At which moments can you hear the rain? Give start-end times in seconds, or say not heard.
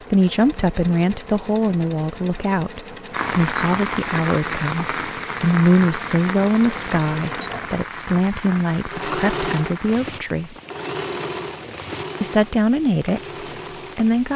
3.1-14.3.